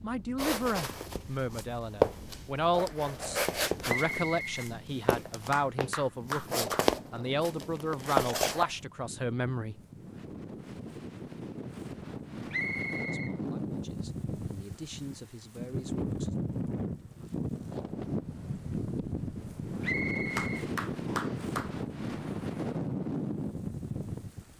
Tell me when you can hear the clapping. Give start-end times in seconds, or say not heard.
5.5-6.9, 20.4-21.7.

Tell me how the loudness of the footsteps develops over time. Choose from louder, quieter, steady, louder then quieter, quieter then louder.
quieter then louder.